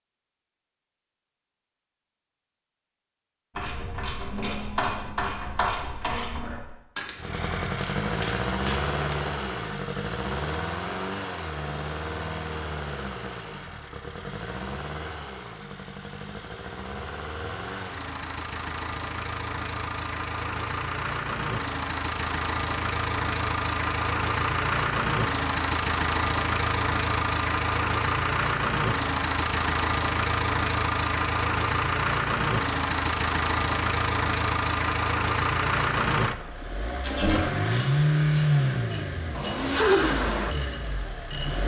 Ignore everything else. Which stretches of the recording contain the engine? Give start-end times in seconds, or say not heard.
7.2-41.6.